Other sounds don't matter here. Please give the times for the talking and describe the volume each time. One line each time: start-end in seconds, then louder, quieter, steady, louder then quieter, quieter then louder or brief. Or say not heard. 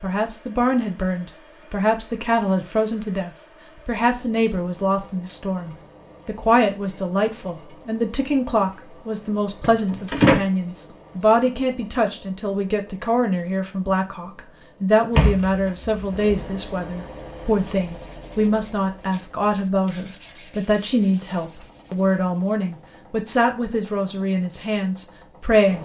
0.0-25.8 steady.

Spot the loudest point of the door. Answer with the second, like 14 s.
10 s.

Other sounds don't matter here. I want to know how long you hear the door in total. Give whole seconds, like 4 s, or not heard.
2 s.